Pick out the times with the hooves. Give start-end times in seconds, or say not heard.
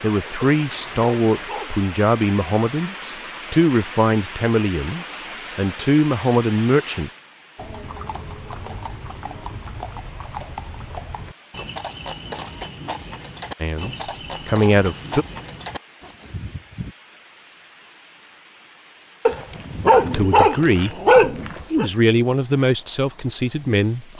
7.5-16.9.